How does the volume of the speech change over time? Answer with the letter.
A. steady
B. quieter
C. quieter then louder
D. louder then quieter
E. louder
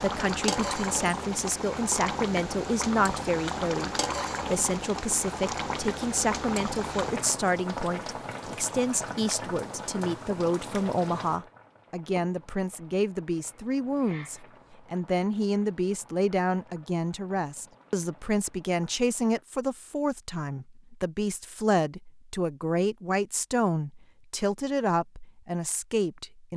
A.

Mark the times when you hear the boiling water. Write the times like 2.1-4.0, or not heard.
0.0-19.4.